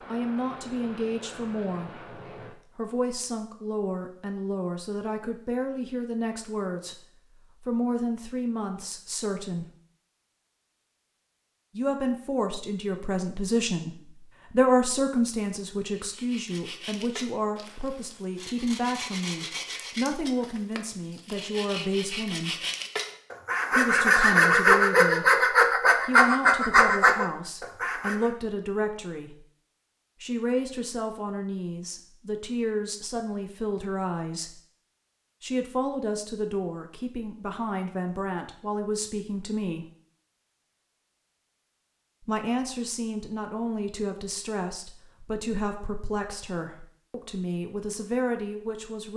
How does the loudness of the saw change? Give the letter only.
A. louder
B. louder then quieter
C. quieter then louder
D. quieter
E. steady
A.